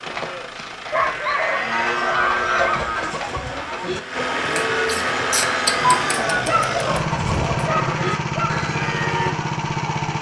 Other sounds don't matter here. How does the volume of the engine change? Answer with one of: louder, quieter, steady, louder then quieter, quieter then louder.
louder.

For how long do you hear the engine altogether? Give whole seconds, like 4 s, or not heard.
10 s.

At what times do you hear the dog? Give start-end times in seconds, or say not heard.
0.9-2.8, 5.8-8.5.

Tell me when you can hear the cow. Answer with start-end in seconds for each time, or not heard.
0.0-9.3.